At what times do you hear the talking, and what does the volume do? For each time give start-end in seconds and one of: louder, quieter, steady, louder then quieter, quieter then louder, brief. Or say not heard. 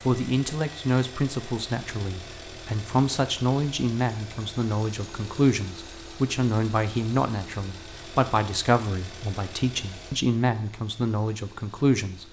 0.0-12.2 steady.